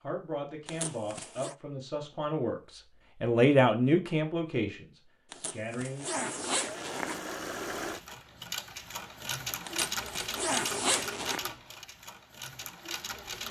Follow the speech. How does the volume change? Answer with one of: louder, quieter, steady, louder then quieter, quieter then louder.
louder then quieter.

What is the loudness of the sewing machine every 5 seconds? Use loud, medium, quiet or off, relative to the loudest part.
off, loud, loud.